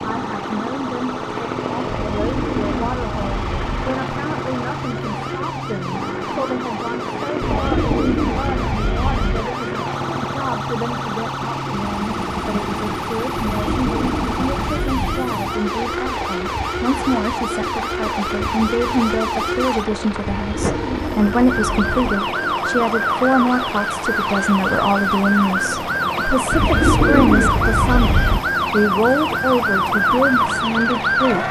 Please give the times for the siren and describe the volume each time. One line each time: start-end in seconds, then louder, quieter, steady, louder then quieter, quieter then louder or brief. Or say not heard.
0.0-31.4 louder.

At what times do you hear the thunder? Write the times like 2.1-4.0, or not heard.
not heard.